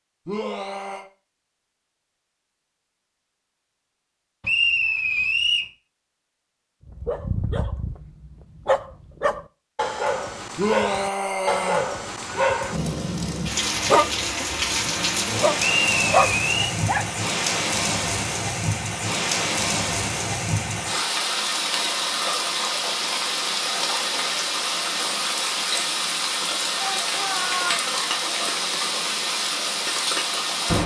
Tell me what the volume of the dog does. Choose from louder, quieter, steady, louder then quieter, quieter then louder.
louder.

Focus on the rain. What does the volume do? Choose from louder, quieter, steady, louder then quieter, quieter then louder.
steady.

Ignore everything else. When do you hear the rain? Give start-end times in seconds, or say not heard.
12.7-30.8.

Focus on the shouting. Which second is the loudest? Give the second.
11 s.